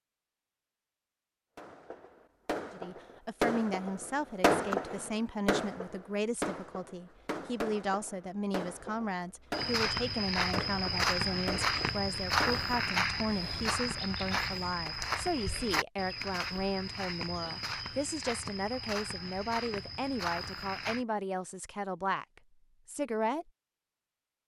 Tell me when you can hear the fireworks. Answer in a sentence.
You can hear the fireworks from 1.6 to 12.8 s.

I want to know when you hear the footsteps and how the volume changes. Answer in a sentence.
You can hear the footsteps from 9.5 to 21.1 s, getting quieter.